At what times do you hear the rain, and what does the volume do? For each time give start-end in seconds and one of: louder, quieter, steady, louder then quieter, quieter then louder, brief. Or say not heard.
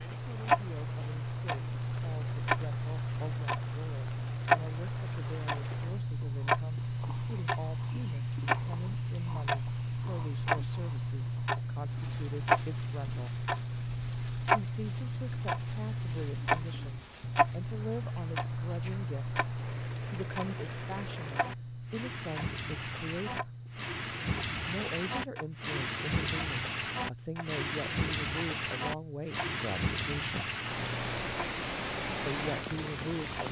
0.0-33.4 louder.